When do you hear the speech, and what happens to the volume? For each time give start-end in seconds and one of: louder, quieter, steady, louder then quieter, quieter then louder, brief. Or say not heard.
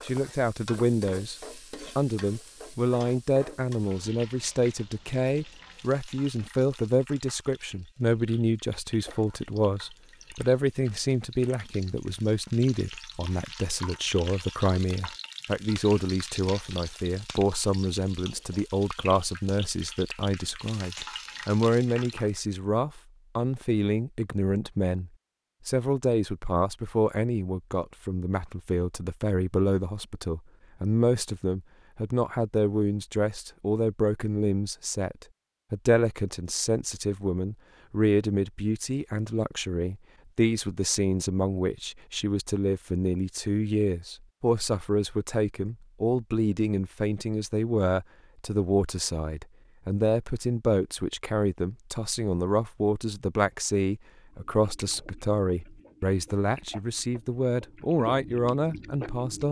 0.0-59.4 steady.